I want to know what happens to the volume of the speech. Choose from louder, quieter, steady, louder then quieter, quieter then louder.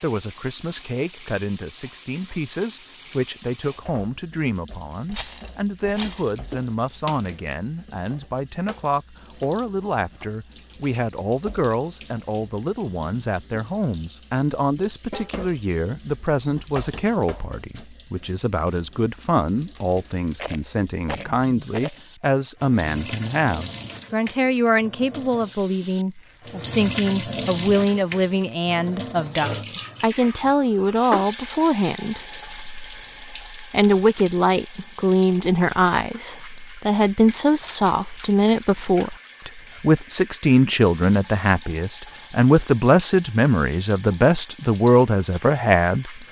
louder.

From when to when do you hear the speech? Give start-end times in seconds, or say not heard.
0.0-46.1.